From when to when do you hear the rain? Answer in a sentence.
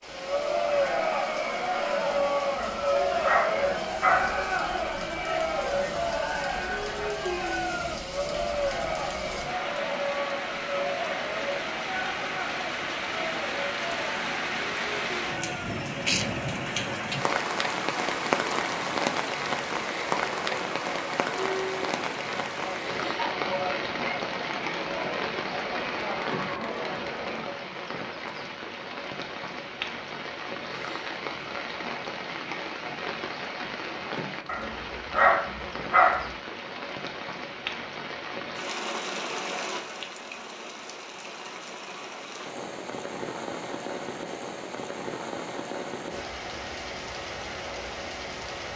The rain can be heard from 0.0 to 48.7 s.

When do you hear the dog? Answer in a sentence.
You can hear the dog from 2.5 to 4.4 s and from 34.5 to 36.3 s.